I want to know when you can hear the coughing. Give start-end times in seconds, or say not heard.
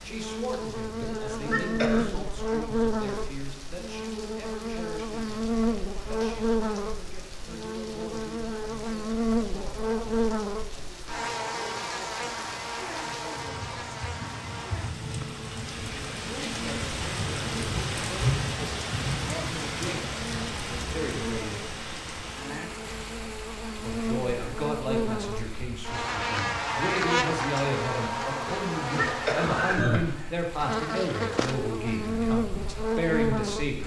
1.0-2.1, 28.4-30.0.